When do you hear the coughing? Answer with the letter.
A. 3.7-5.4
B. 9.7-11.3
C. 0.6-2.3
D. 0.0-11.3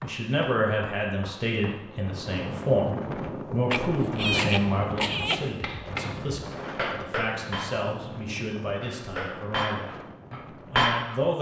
A.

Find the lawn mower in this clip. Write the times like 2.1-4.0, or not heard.
not heard.